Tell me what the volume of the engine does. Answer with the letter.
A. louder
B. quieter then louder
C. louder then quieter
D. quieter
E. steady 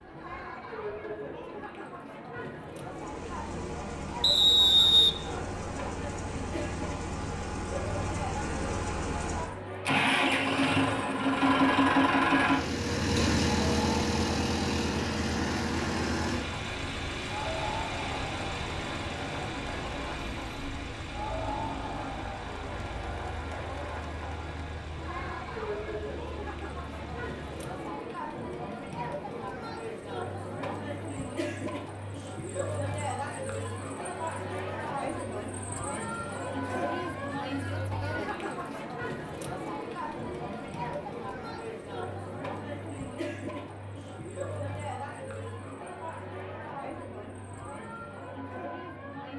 C.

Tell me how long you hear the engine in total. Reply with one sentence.
The engine can be heard for 25 seconds in total.